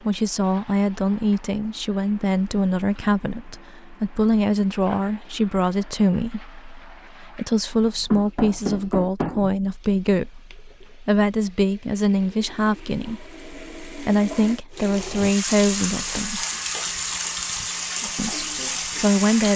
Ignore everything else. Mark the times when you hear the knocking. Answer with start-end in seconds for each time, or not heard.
8.1-9.4.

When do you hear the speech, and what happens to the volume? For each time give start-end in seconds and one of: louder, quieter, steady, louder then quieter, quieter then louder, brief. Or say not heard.
0.1-16.4 steady
18.1-19.5 brief.